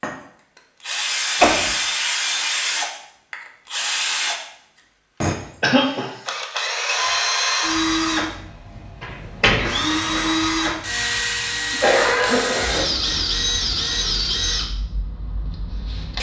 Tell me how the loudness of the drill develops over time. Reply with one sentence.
The volume of the drill stays about the same.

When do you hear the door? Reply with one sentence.
The door can be heard from 9.0 to 10.3 s.